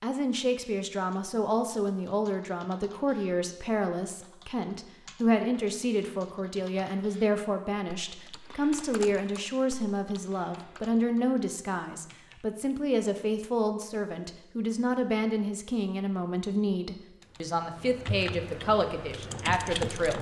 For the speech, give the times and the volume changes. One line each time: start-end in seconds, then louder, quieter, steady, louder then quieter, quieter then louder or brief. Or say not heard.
0.0-20.1 steady.